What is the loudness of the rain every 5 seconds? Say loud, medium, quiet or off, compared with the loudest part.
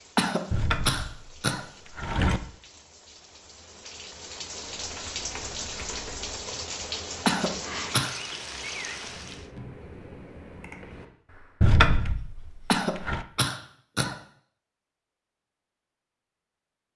medium, loud, off, off.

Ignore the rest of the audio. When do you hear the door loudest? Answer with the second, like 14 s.
12 s.